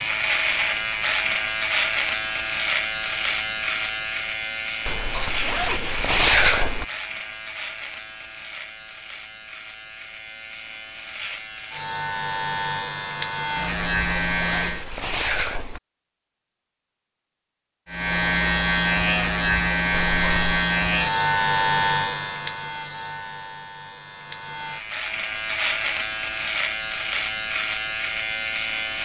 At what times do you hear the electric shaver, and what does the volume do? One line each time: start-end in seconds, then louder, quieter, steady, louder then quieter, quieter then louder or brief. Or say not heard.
0.0-14.8 quieter then louder
17.9-28.9 quieter then louder.